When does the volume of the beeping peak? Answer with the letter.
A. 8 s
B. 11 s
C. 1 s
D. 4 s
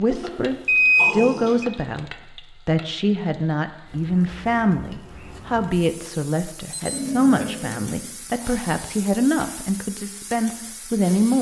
C.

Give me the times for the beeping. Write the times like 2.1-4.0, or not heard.
0.2-1.6, 6.7-7.5.